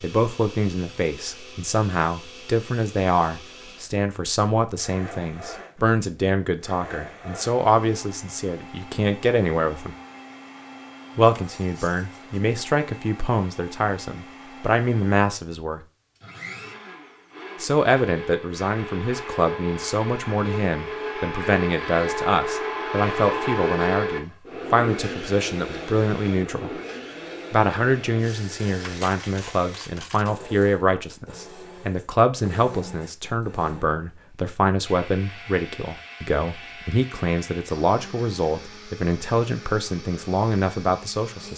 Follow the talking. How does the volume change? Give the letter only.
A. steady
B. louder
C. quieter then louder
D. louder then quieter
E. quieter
A.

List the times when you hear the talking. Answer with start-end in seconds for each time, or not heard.
0.0-9.9, 11.2-15.8, 17.6-26.7, 27.5-41.5.